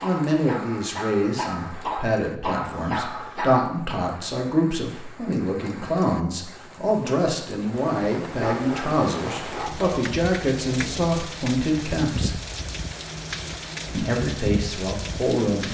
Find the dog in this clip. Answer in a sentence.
You can hear the dog from 0.0 to 3.7 s and from 8.3 to 10.0 s.